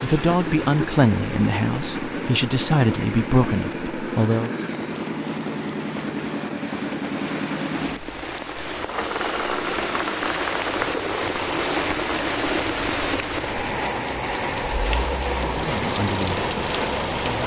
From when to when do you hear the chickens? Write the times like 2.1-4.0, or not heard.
not heard.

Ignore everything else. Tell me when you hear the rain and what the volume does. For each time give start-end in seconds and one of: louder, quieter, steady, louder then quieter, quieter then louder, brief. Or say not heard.
0.2-17.4 louder.